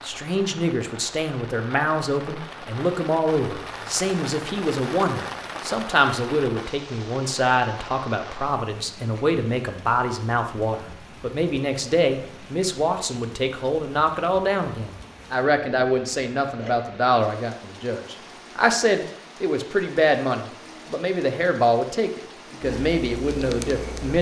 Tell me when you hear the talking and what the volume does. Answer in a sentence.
The talking can be heard from 0.0 to 24.1 s, at a steady volume.